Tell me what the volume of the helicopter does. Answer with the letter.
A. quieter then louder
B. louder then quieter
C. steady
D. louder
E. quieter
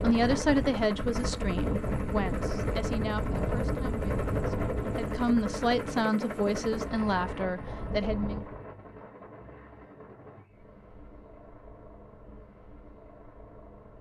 E.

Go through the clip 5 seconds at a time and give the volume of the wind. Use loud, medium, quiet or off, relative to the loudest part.
loud, medium, off.